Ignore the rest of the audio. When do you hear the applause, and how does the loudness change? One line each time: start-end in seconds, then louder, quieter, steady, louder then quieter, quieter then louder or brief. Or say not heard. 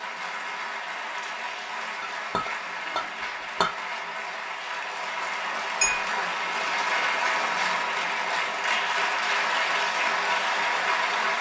0.0-11.3 louder.